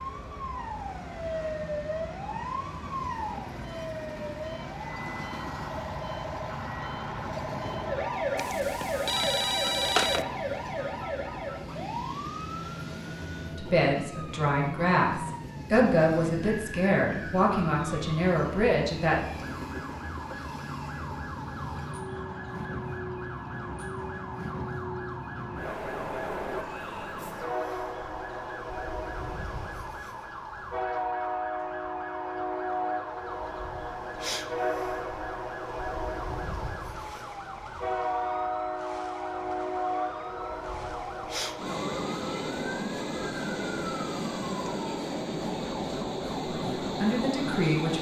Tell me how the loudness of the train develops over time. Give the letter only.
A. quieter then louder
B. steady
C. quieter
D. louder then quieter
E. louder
E.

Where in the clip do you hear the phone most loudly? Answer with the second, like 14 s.
10 s.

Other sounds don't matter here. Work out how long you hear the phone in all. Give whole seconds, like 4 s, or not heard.
2 s.